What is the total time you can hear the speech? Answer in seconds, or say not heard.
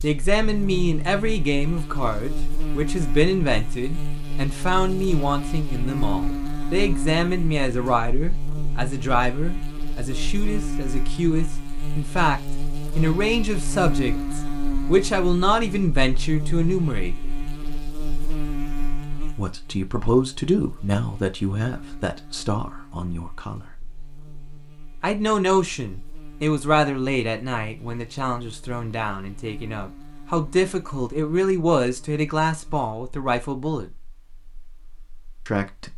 31 s.